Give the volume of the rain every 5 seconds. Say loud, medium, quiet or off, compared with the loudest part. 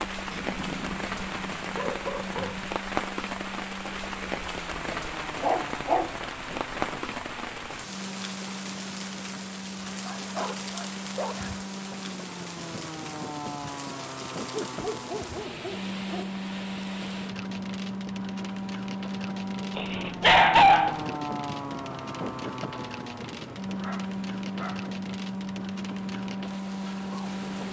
loud, loud, medium, medium, medium, medium.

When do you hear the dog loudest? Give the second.
21 s.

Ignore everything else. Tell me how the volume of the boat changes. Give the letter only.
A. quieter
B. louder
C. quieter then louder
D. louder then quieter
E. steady
B.